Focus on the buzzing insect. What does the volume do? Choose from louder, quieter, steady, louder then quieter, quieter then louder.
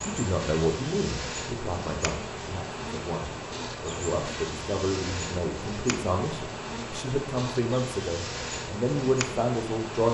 steady.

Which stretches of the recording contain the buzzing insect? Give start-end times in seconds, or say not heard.
0.0-10.0.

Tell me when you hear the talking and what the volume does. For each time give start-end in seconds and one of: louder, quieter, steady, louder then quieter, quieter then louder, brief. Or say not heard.
0.0-10.0 quieter then louder.